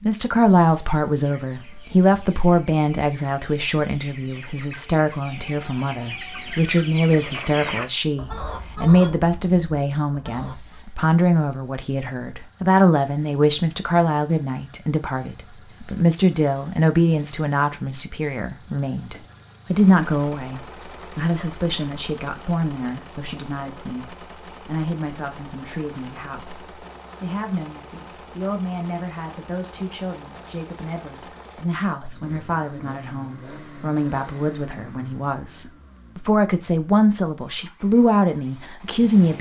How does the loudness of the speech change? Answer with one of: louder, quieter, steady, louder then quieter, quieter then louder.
quieter then louder.